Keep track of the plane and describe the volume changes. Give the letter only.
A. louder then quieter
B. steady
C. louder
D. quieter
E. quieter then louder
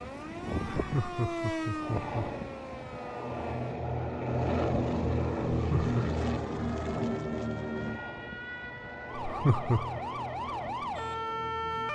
A.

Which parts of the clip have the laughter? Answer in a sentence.
You can hear the laughter from 0.8 to 2.3 s, from 5.5 to 6.0 s and from 9.2 to 10.0 s.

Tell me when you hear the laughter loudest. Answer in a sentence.
The loudest moment of the laughter is at 10 seconds.